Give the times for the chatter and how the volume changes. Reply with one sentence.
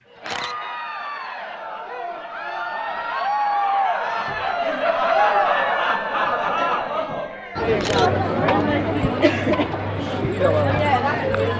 You can hear the chatter from 0.1 to 11.5 s, getting louder.